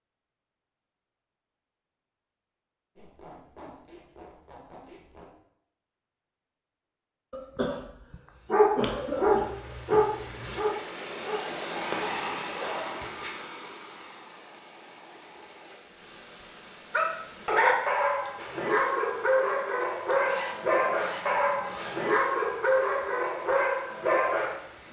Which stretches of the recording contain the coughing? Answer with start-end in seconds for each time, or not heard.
7.3-10.1.